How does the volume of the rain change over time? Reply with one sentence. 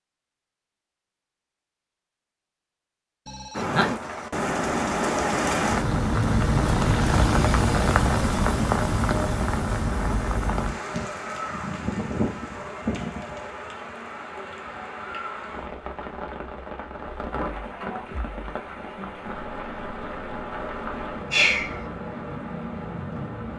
The loudness of the rain goes down.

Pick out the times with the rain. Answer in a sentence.
The rain can be heard from 3.5 to 23.5 s.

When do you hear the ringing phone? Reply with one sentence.
You can hear the ringing phone from 3.2 to 3.9 s.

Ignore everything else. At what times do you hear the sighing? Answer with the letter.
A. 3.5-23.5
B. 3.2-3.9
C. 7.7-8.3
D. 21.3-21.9
D.